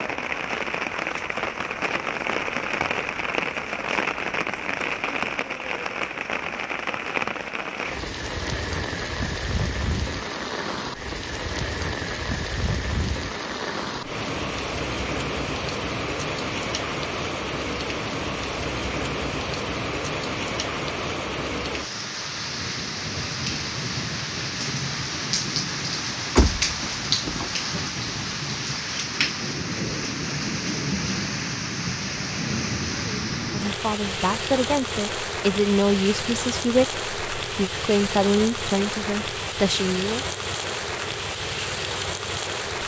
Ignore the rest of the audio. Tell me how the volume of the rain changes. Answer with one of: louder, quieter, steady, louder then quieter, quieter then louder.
steady.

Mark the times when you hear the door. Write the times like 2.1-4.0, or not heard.
26.4-28.0.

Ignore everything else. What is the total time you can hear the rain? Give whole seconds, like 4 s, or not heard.
43 s.